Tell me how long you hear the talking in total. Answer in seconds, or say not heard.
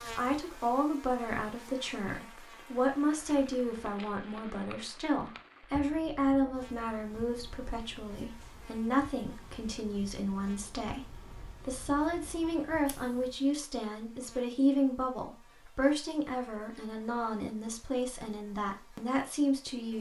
20 s.